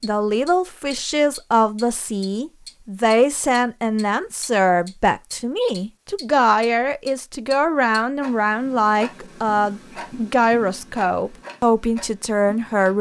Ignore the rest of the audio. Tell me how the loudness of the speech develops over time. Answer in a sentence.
The loudness of the speech stays about the same.